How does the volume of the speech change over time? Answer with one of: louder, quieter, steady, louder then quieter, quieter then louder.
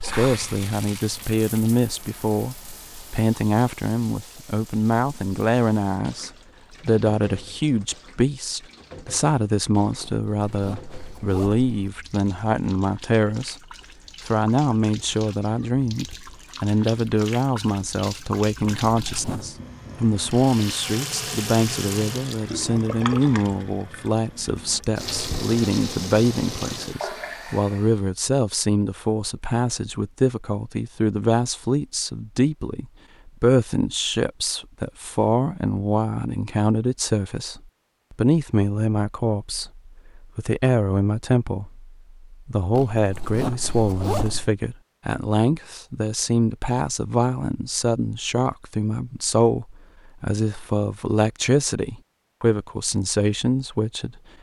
steady.